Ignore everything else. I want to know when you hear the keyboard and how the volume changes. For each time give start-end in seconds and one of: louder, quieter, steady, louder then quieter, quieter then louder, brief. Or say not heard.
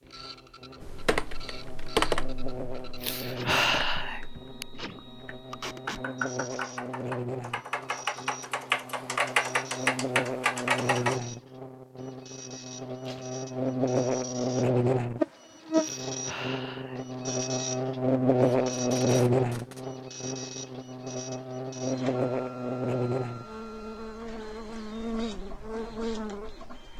0.8-11.2 quieter then louder.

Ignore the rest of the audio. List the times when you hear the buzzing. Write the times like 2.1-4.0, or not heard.
0.0-26.9.